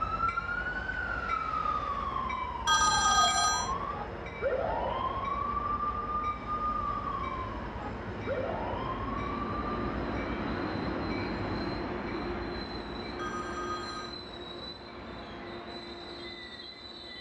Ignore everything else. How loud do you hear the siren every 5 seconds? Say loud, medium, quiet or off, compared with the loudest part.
loud, loud, off, off.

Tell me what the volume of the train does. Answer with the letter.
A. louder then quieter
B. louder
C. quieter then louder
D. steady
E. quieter
A.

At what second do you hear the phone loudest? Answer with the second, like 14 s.
3 s.